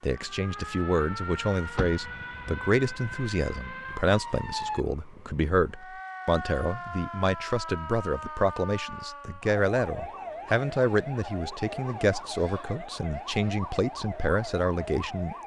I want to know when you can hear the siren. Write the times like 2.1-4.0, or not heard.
0.0-15.4.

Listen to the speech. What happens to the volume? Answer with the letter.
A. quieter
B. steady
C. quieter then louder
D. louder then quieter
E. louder
B.